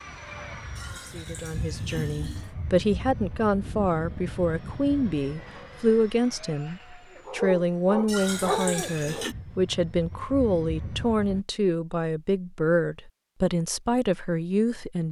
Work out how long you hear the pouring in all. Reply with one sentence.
The pouring can be heard for 3 seconds in total.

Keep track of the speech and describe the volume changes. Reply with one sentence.
The loudness of the speech stays about the same.